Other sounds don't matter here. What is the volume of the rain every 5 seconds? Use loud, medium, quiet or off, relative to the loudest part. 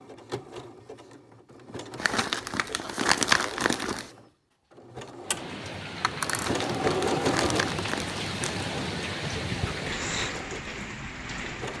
off, loud, loud.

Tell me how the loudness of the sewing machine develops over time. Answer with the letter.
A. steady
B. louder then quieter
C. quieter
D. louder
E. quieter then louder
B.